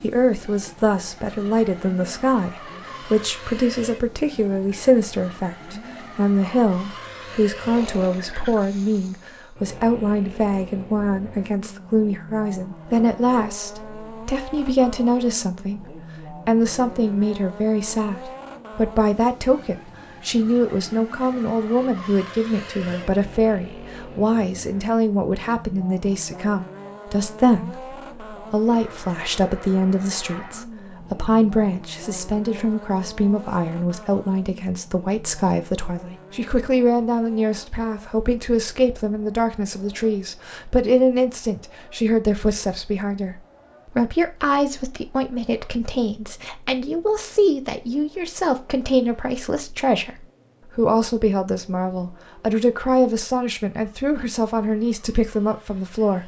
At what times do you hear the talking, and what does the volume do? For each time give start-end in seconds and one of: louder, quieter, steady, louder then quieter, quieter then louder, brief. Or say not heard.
0.0-56.2 steady.